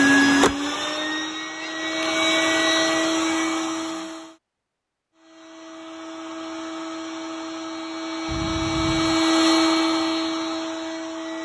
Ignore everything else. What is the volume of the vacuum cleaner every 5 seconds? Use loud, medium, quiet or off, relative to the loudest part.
loud, loud, medium.